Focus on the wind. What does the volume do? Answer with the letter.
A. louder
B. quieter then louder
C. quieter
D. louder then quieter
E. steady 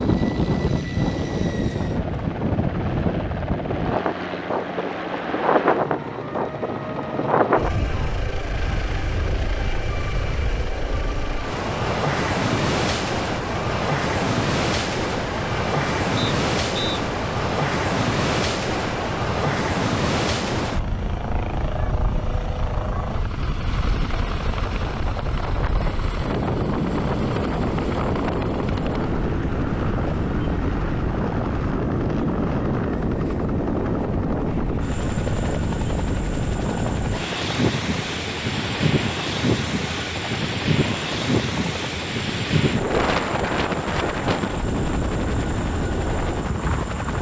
E.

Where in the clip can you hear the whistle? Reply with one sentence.
You can hear the whistle from 16.1 to 17.0 s.